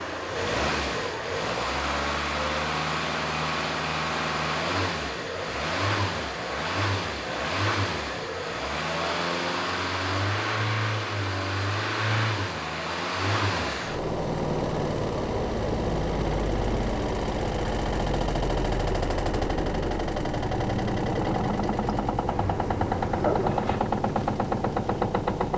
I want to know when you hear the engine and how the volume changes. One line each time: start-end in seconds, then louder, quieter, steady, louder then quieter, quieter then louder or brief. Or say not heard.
0.0-25.5 steady.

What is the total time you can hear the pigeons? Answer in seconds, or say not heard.
2 s.